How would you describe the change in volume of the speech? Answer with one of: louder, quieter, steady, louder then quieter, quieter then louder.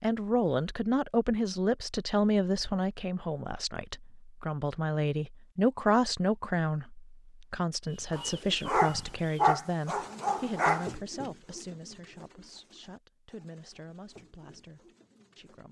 quieter.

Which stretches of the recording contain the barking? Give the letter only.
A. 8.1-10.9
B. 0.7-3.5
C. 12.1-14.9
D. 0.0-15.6
A.